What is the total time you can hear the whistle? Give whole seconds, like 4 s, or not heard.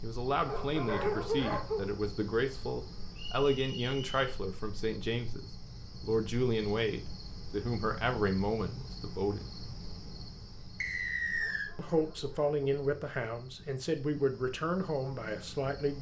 2 s.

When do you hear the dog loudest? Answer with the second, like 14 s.
1 s.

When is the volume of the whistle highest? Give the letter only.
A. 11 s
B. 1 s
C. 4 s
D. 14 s
A.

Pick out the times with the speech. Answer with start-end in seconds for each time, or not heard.
0.0-9.4, 11.8-15.9.